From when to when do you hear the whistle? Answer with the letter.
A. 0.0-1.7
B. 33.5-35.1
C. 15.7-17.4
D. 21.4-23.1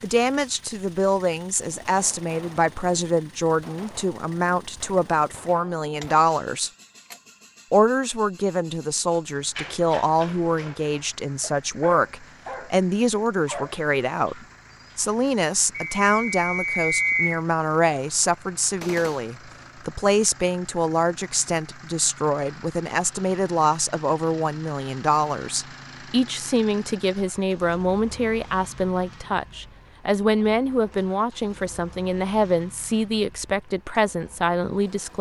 C.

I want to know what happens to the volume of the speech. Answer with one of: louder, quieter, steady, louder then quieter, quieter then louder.
steady.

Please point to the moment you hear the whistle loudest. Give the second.
17 s.